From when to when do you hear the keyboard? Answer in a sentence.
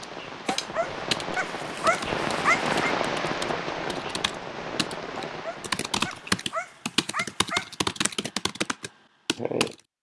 You can hear the keyboard from 0.0 to 9.8 s.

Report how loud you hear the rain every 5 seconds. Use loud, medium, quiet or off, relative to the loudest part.
loud, medium.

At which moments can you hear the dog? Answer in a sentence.
The dog can be heard from 0.5 to 3.0 s and from 5.2 to 7.8 s.